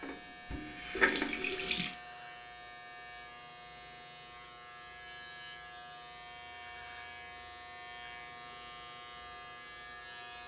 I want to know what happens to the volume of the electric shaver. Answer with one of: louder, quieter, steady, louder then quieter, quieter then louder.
steady.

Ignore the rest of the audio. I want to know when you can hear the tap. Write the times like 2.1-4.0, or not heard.
0.0-1.9.